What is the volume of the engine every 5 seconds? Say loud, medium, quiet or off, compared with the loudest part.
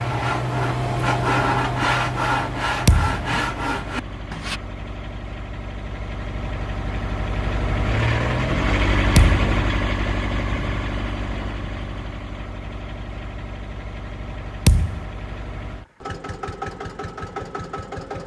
medium, loud, medium, medium.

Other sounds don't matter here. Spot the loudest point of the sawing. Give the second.
1 s.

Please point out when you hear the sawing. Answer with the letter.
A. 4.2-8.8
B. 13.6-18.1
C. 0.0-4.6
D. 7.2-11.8
C.